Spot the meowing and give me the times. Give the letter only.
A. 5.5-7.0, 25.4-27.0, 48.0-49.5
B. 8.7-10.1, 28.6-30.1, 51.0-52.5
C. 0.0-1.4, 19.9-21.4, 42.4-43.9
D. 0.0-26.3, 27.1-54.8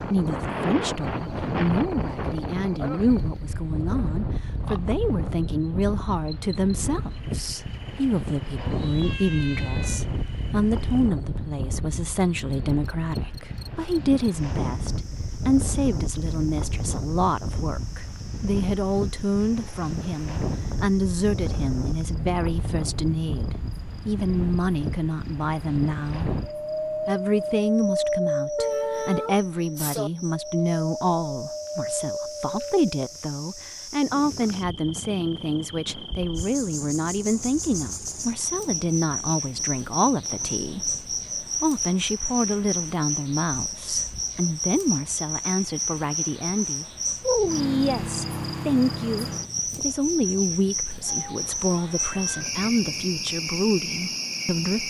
B.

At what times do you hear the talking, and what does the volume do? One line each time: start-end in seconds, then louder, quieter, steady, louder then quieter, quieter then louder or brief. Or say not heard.
0.0-26.3 steady
27.1-54.8 steady.